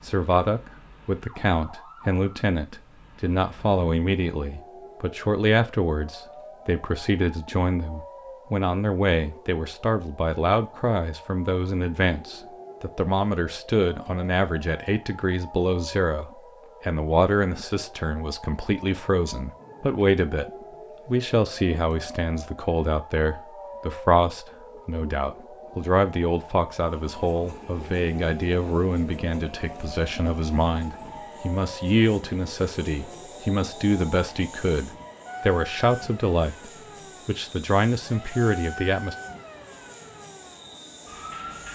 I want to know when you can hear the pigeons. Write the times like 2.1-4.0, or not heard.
not heard.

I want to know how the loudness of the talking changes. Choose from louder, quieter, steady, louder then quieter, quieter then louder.
steady.